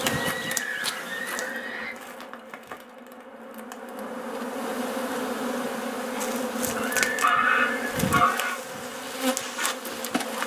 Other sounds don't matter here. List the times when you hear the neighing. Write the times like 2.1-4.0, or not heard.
0.1-1.9, 7.1-8.0.